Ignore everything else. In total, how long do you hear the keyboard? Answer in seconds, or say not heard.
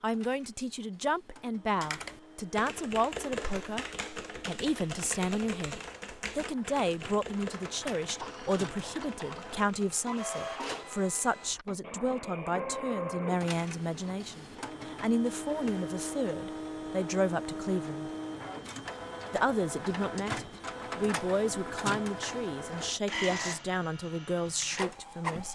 8 s.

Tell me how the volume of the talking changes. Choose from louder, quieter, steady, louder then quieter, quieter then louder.
steady.